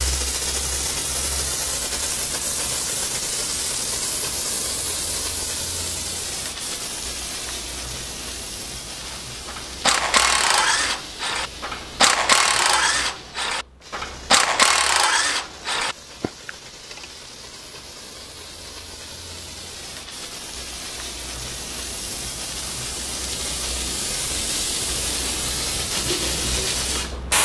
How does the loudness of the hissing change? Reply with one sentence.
The volume of the hissing goes down, then up.